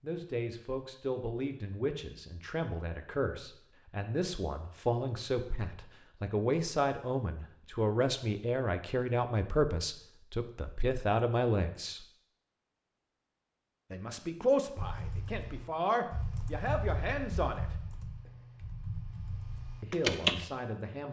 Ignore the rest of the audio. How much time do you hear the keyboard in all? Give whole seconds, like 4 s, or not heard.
6 s.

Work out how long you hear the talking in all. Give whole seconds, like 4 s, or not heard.
17 s.